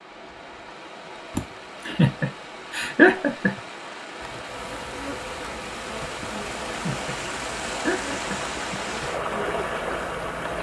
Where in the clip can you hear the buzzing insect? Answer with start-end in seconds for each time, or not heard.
4.2-10.5.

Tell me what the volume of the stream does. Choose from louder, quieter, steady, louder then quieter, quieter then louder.
louder.